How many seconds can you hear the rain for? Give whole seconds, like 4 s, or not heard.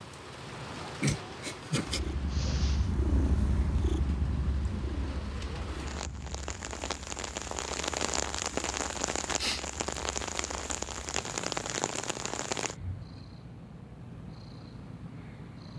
13 s.